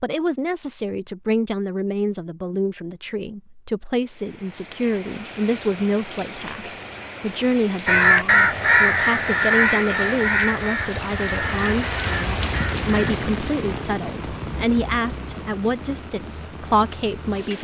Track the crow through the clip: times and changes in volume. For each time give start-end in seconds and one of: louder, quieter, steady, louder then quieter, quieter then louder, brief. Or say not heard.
7.8-13.2 quieter.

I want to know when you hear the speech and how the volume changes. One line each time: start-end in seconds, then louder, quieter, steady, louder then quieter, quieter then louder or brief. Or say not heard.
0.0-17.5 steady.